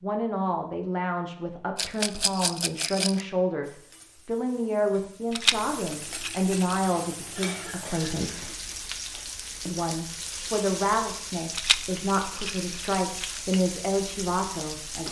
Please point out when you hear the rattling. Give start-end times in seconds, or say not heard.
1.8-3.2, 5.3-6.8, 11.5-13.4.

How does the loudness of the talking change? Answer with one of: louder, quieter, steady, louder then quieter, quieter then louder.
steady.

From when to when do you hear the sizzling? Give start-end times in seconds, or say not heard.
3.6-15.0.